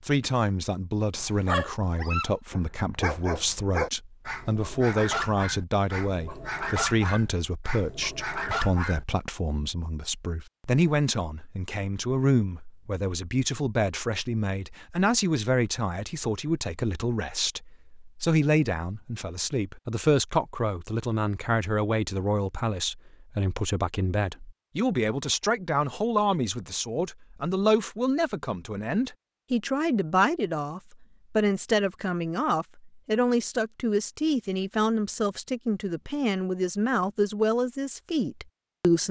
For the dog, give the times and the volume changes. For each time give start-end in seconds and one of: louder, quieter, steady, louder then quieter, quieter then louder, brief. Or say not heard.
1.1-9.1 steady.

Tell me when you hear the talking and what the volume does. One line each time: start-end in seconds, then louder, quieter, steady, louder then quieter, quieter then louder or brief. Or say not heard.
0.0-39.0 steady.